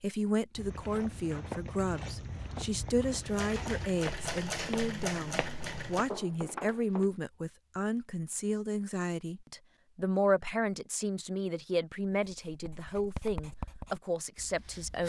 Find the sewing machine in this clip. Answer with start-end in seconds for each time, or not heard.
3.2-6.2.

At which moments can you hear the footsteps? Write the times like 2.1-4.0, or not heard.
0.6-7.1.